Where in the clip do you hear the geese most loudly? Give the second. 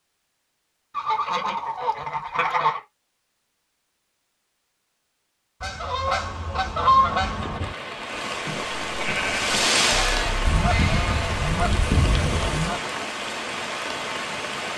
7 s.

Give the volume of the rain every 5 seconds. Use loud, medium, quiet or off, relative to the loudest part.
off, loud, loud.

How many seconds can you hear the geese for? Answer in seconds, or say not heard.
6 s.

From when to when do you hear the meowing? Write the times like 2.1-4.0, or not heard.
not heard.